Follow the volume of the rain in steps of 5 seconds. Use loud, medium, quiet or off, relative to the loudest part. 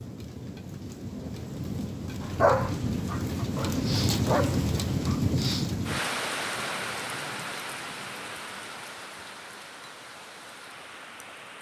loud, loud, quiet.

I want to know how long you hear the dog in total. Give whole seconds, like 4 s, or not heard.
3 s.